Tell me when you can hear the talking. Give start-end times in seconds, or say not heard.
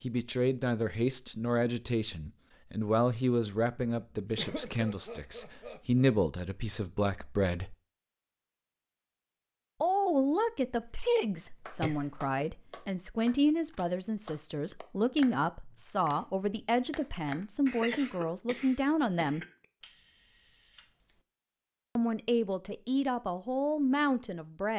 0.0-7.8, 9.8-19.4, 21.9-24.7.